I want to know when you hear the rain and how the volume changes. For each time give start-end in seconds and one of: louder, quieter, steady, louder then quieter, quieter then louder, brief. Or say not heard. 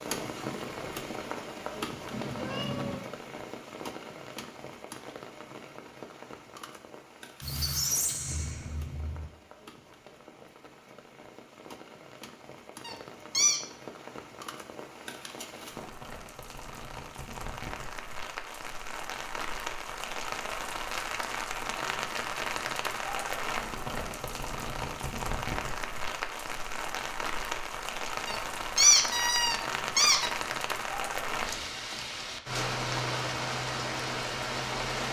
0.0-35.0 quieter then louder.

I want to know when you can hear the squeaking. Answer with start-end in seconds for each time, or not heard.
7.4-9.2, 12.8-13.6, 28.2-30.3.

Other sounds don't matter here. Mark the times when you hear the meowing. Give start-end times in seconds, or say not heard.
2.1-3.0.